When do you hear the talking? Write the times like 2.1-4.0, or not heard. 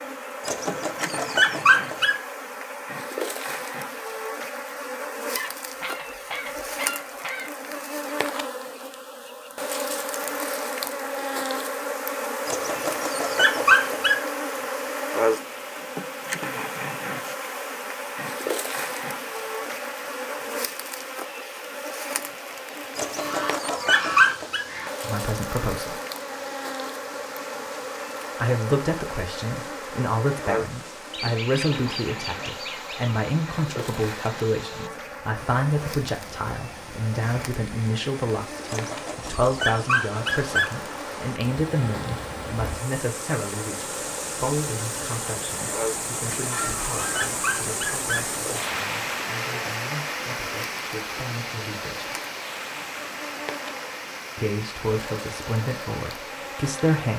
25.0-25.9, 28.4-52.1, 54.4-57.1.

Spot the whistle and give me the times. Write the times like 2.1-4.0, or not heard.
not heard.